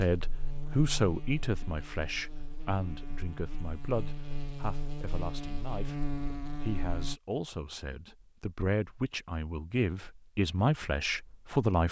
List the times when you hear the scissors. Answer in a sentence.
You can't hear the scissors here.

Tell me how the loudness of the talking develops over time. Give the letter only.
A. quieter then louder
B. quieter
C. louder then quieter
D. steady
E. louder
A.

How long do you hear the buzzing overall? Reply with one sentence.
You can hear the buzzing for 7 seconds altogether.